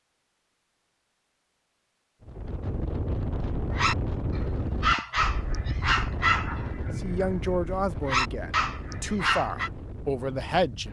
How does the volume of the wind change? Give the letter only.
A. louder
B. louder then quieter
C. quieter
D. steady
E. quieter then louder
C.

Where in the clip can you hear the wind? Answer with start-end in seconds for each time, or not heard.
2.2-10.8.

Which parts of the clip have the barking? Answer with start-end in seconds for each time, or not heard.
3.6-9.7.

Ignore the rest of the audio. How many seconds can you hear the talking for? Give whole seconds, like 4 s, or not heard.
4 s.